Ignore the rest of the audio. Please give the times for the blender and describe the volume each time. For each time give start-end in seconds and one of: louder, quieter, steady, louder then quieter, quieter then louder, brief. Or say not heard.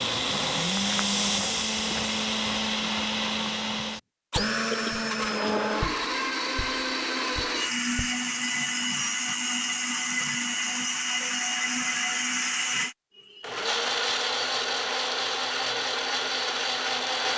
0.0-17.3 steady.